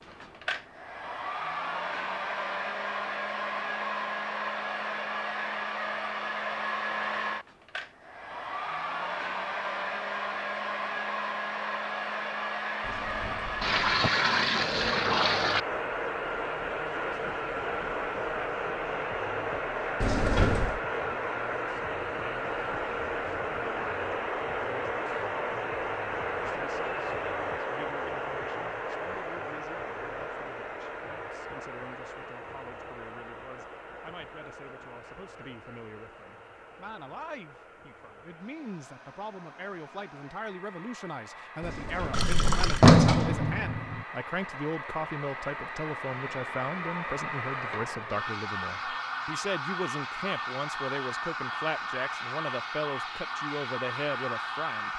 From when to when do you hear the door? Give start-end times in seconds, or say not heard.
12.8-14.1, 20.0-20.8, 41.6-44.0.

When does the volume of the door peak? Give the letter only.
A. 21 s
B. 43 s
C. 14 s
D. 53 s
B.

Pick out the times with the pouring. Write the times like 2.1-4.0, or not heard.
13.6-15.6, 42.1-42.9.